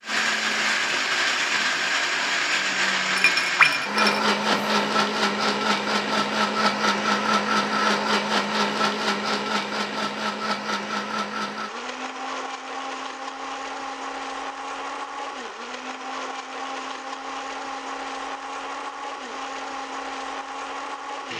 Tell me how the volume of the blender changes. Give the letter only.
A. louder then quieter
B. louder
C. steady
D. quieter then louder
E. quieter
E.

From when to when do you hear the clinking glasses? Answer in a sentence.
You can hear the clinking glasses from 3.1 to 4.8 s.